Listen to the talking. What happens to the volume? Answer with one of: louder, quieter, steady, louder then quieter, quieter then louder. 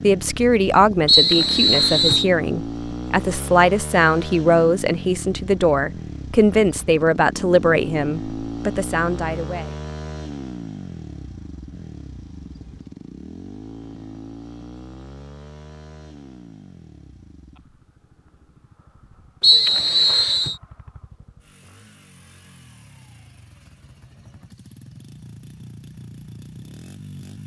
steady.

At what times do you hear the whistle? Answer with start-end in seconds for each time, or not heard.
1.1-2.2, 19.4-20.6.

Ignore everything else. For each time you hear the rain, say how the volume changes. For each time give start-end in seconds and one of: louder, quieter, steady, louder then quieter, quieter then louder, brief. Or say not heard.
not heard.